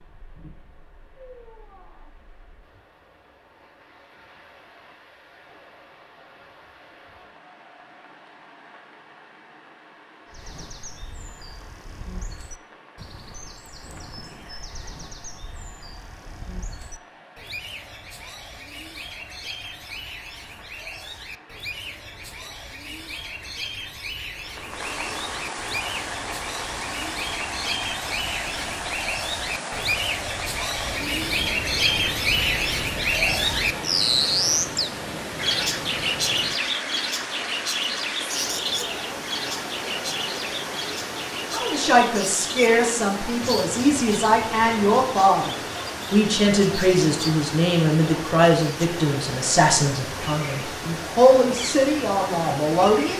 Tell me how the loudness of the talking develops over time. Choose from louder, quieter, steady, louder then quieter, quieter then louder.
steady.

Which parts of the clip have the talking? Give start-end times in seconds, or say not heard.
41.5-53.1.